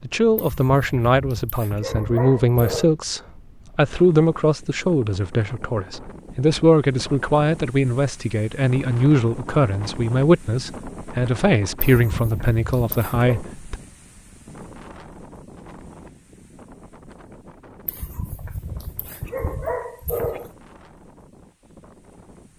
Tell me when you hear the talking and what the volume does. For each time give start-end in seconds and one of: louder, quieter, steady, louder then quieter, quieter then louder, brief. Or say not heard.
0.0-13.8 steady.